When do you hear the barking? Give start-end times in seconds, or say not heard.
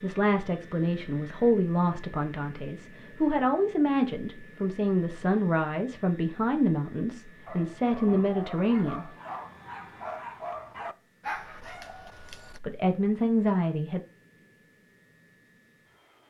7.5-12.6.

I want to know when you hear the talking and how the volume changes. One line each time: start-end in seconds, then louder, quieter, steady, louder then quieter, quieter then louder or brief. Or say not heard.
0.0-9.1 steady
12.6-14.0 brief.